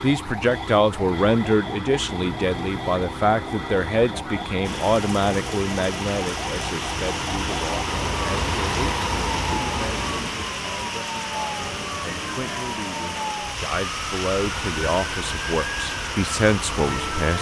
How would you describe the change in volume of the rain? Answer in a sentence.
The volume of the rain stays about the same.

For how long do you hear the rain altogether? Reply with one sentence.
You can hear the rain for 13 seconds altogether.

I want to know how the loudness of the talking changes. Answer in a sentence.
The loudness of the talking goes down, then up.